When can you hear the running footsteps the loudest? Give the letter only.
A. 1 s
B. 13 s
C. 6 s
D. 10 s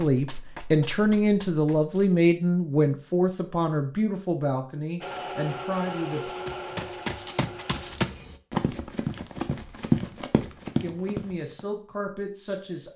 D.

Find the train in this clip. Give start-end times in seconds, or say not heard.
5.0-8.4.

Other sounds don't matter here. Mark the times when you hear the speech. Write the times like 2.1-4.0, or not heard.
0.0-6.3, 10.8-12.9.